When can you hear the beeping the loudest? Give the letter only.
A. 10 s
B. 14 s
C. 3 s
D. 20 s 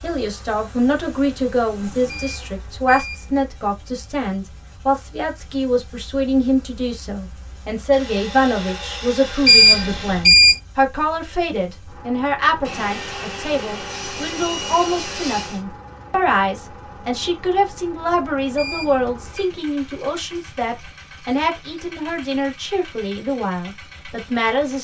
A.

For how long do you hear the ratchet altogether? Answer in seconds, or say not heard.
not heard.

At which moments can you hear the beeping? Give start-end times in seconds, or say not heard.
2.0-3.3, 9.4-10.6, 18.6-19.5.